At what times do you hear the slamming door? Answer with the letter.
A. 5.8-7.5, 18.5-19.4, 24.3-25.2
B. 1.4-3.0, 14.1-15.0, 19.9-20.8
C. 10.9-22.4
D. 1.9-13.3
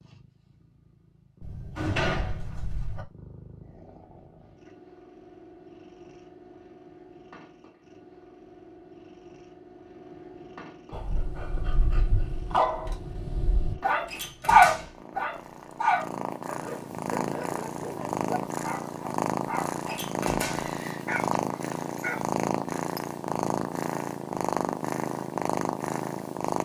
B.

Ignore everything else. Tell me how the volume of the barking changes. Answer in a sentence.
The volume of the barking goes up, then down.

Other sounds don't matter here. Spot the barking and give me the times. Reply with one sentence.
You can hear the barking from 10.9 to 22.4 s.